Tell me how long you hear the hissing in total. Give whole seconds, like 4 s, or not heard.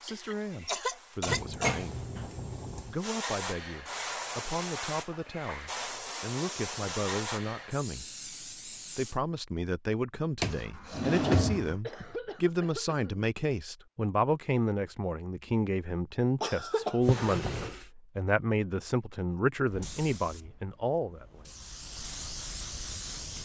13 s.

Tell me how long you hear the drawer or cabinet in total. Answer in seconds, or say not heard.
4 s.